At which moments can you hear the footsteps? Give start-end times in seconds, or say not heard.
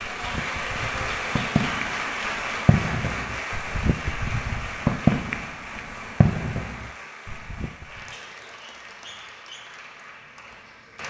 not heard.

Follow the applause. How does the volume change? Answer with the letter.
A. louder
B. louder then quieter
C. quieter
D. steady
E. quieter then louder
C.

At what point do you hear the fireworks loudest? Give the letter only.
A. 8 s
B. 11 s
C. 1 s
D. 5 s
D.